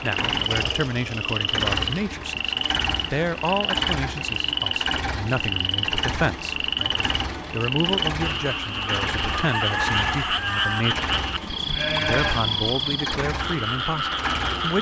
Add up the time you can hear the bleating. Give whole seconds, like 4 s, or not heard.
2 s.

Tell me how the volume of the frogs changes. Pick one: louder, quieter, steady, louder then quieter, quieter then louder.
steady.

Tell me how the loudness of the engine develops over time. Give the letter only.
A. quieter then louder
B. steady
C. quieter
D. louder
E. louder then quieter
B.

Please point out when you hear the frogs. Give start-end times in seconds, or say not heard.
0.0-14.7.